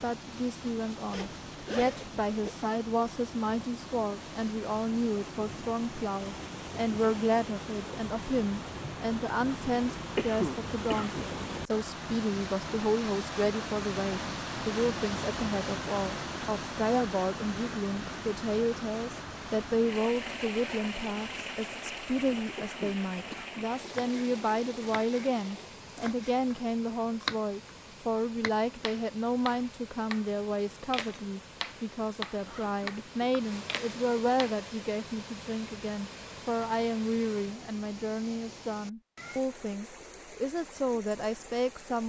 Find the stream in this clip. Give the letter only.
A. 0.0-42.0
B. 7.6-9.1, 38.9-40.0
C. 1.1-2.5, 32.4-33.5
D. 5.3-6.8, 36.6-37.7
A.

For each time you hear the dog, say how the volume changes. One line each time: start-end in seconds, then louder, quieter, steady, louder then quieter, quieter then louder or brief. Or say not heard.
not heard.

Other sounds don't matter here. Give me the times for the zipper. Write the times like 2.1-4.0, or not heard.
1.1-2.5, 32.4-33.5.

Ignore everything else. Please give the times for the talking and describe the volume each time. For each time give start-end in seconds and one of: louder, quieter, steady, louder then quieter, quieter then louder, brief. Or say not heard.
0.0-42.0 steady.